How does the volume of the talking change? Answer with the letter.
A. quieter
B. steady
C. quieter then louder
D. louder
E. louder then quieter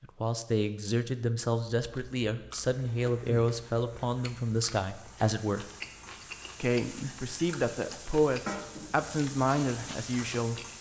B.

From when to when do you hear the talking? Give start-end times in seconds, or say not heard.
0.0-5.7, 6.6-10.6.